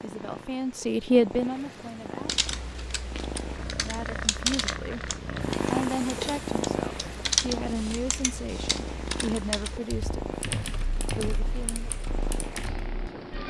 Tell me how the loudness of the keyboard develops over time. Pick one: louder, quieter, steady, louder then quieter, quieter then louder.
louder then quieter.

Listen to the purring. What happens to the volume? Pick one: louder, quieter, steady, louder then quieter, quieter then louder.
louder then quieter.